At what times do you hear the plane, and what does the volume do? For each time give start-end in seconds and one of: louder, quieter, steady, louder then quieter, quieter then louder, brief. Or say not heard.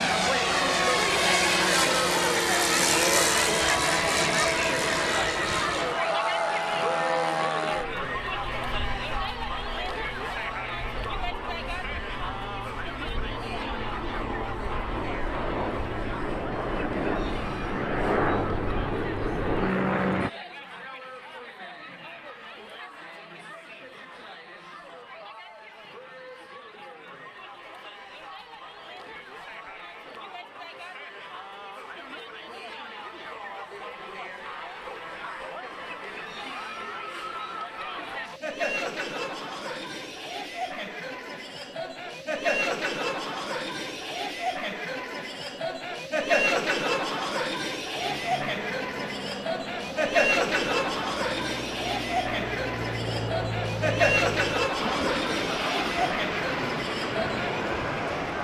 0.0-20.3 quieter then louder
48.0-58.3 louder.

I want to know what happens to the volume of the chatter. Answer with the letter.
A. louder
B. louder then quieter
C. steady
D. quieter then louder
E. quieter
D.